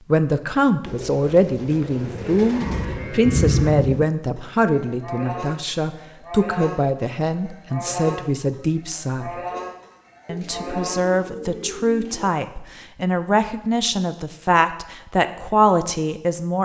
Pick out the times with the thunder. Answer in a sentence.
You can hear the thunder from 2.6 to 4.0 s.